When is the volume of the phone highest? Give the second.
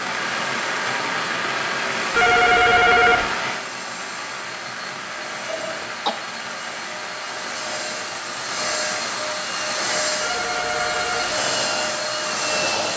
3 s.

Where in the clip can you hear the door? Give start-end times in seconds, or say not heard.
not heard.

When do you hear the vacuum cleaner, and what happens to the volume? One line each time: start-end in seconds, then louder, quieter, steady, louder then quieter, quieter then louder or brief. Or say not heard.
0.1-12.9 louder.